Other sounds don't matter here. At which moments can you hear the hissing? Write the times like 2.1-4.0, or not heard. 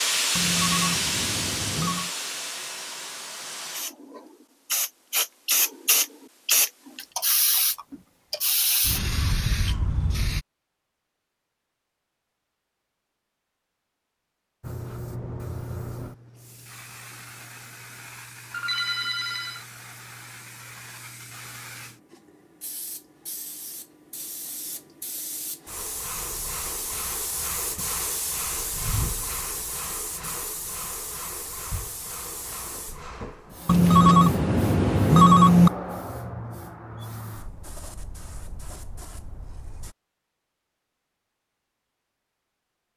0.0-10.4, 14.6-40.0.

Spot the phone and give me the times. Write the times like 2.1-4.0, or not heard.
0.3-2.1, 18.5-19.6, 33.6-35.7.